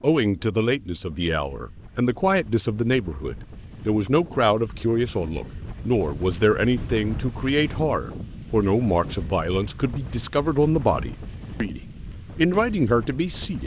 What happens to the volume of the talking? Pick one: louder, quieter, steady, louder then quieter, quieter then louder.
steady.